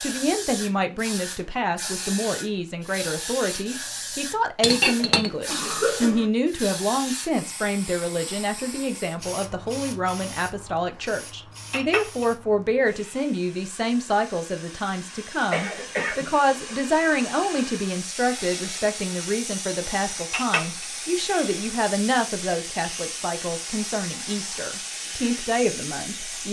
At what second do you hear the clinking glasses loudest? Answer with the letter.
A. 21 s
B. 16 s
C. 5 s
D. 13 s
C.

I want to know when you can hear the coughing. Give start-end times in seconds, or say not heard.
5.0-6.3, 15.5-16.8.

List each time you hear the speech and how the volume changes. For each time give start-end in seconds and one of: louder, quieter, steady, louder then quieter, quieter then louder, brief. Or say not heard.
0.0-26.4 steady.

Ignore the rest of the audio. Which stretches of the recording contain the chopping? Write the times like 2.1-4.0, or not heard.
not heard.